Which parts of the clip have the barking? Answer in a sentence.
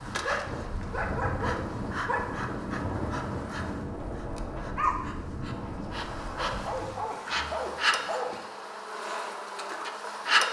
You can hear the barking from 0.2 to 2.2 s and from 6.3 to 8.4 s.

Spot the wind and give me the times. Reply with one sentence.
The wind can be heard from 0.0 to 6.8 s.